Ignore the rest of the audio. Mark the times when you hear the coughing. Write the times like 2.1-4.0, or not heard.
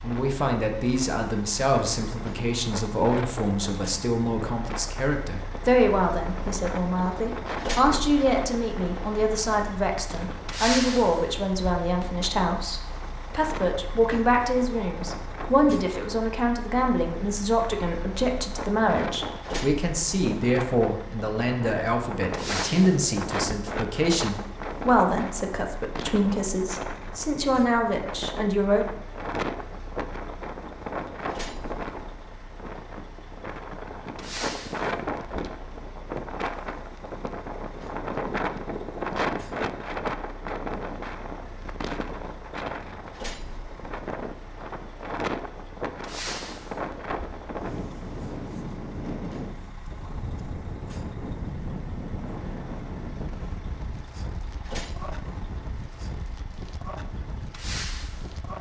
not heard.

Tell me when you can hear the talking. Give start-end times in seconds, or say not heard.
0.0-28.9.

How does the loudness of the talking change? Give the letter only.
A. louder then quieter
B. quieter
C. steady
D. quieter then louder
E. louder
C.